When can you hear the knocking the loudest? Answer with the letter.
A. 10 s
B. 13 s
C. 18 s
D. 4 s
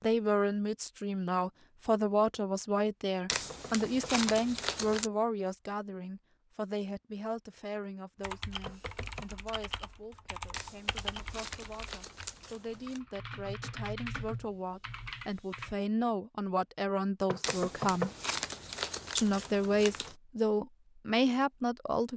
C.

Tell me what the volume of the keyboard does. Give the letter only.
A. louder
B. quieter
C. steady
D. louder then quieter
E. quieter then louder
C.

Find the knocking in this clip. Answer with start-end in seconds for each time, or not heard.
3.3-4.3, 8.7-9.3, 17.2-18.3.